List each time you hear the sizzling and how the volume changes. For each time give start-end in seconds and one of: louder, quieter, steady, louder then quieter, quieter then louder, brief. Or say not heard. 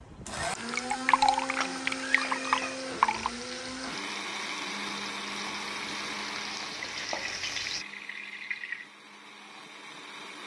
1.5-7.8 louder.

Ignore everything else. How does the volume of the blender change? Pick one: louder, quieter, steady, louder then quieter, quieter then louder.
quieter.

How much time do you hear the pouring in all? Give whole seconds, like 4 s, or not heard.
5 s.